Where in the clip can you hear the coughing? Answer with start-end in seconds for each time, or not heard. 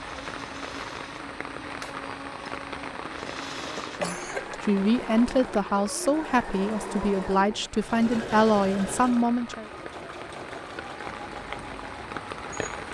3.6-4.6.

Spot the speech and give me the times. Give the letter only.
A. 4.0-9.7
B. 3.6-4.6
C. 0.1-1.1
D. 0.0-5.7
A.